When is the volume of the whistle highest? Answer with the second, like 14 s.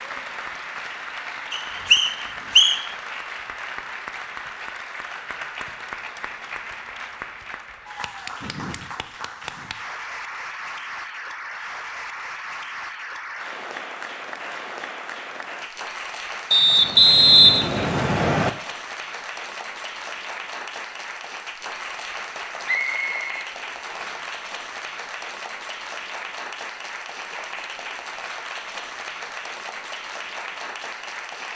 17 s.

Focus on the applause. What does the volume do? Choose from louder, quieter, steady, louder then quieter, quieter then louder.
steady.